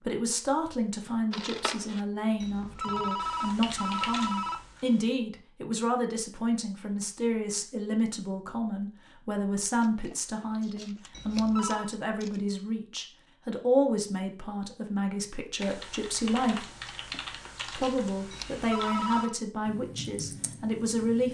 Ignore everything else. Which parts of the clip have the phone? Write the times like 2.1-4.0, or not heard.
2.4-4.8, 11.1-11.9, 18.3-19.4.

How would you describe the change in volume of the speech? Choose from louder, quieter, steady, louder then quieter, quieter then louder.
steady.